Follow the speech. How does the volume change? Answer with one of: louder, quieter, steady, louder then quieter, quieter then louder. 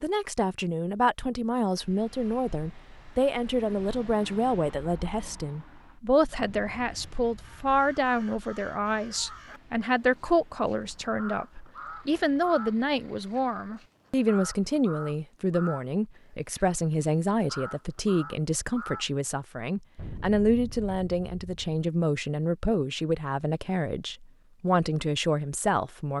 steady.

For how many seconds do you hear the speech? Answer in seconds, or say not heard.
26 s.